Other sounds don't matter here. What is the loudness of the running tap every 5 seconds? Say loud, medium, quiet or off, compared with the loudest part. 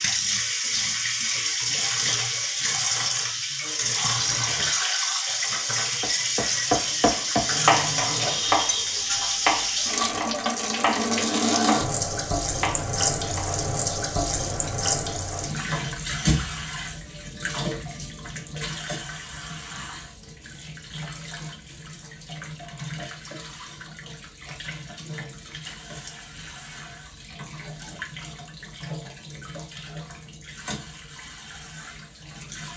loud, loud, loud, medium, quiet, quiet, quiet.